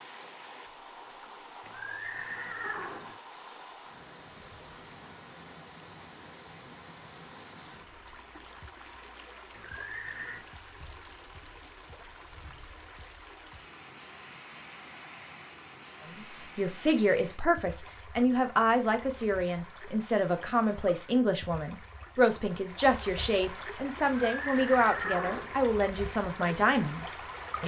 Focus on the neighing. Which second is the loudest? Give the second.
25 s.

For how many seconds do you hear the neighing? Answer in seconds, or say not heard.
4 s.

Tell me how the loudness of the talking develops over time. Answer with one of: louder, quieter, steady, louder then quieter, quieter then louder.
steady.